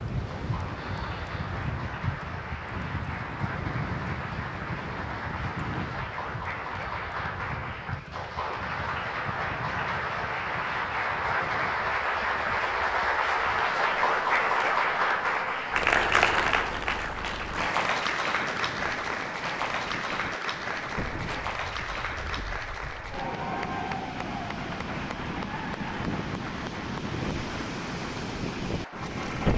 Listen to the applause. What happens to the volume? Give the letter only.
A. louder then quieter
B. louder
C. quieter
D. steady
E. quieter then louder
A.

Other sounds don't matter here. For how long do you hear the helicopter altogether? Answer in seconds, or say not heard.
not heard.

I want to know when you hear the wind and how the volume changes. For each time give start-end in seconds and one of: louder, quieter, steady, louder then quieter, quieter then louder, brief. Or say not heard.
0.0-29.5 quieter then louder.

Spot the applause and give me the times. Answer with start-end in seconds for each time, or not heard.
0.1-29.5.